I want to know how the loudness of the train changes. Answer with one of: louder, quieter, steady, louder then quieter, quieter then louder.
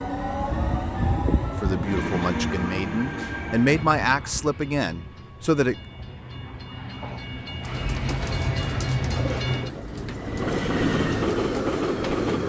quieter then louder.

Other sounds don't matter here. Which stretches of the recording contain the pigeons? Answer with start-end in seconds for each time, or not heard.
7.6-12.2.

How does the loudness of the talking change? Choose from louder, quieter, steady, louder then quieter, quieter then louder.
louder then quieter.